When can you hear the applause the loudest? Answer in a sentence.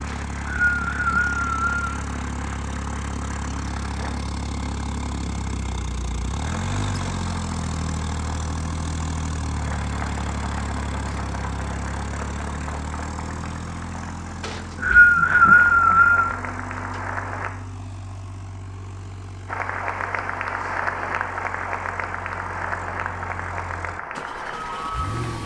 The volume of the applause peaks at 21 seconds.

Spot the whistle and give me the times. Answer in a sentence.
The whistle can be heard from 0.1 to 1.9 s and from 14.4 to 16.3 s.